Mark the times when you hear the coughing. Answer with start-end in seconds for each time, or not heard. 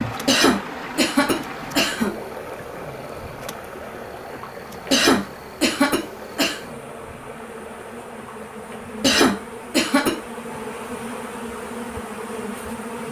0.2-2.1, 4.9-6.6, 9.0-10.2.